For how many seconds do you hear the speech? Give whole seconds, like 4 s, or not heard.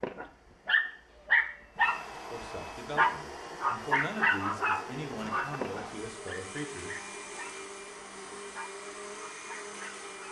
5 s.